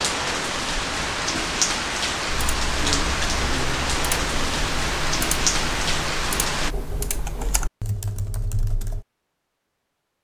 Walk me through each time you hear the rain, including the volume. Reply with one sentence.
The rain can be heard from 0.0 to 6.8 s, at a steady volume.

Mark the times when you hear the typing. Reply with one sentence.
The typing can be heard from 2.2 to 9.1 s.